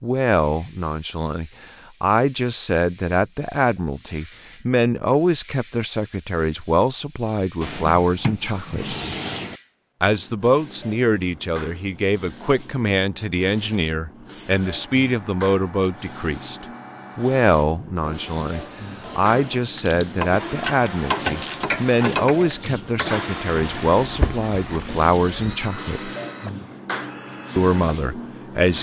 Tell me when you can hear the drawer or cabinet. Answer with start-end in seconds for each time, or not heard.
7.6-9.6.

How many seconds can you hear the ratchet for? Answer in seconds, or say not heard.
6 s.